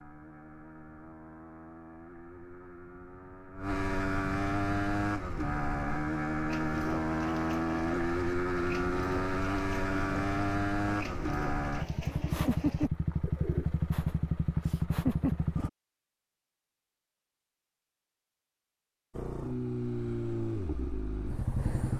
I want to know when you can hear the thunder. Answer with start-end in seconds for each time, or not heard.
not heard.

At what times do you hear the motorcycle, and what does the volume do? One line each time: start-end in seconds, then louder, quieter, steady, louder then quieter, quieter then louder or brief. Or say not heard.
0.0-15.7 louder
19.1-21.9 brief.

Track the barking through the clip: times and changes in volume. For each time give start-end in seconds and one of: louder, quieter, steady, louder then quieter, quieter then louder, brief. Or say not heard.
not heard.